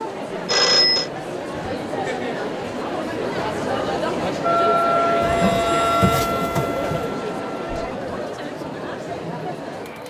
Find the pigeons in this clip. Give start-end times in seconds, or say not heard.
5.2-7.2.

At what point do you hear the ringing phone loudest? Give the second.
1 s.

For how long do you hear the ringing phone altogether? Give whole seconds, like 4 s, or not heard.
2 s.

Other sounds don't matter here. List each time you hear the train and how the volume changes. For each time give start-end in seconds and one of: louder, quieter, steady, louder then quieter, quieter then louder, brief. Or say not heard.
not heard.